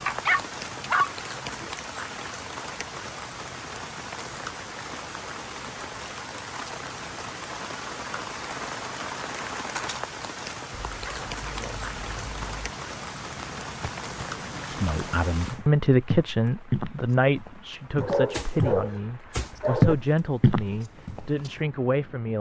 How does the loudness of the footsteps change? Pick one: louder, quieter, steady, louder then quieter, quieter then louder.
louder.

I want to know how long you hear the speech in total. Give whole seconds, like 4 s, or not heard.
8 s.